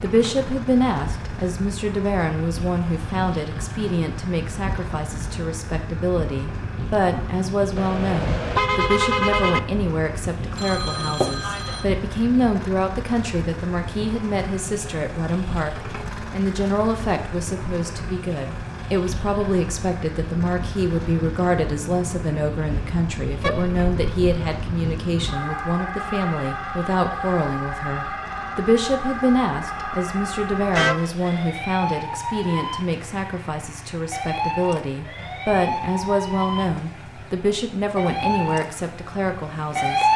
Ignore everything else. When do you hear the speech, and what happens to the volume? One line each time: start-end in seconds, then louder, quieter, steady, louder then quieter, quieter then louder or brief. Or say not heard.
0.0-40.1 steady.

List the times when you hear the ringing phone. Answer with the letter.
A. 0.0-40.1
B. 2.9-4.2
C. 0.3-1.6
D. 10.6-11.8
D.